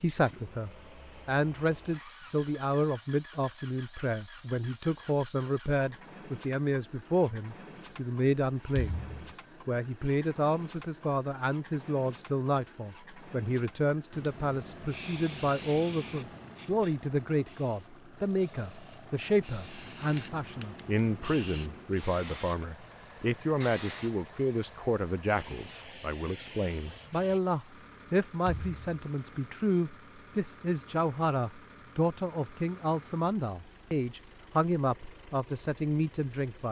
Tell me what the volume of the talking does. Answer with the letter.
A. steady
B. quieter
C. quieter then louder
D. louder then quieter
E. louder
A.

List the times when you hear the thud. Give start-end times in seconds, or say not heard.
8.8-9.3, 28.4-28.9.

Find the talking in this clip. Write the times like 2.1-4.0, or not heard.
0.0-9.0, 9.7-36.6.